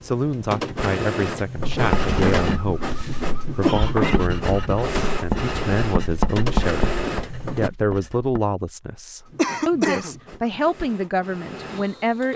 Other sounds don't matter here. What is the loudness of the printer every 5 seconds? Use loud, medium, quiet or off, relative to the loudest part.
loud, loud, quiet.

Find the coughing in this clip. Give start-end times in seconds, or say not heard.
3.6-4.2, 9.3-10.2.